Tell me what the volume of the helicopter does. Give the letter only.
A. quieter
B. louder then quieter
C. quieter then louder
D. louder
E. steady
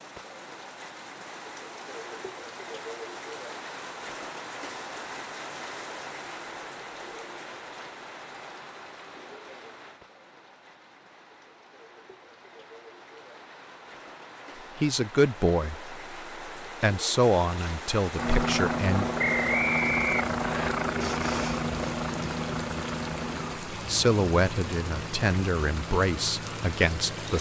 A.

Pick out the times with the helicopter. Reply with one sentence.
The helicopter can be heard from 18.1 to 27.3 s.